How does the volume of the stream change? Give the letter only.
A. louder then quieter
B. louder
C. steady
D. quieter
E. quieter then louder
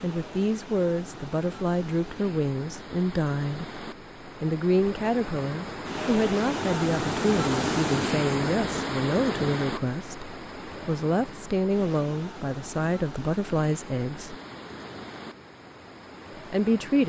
A.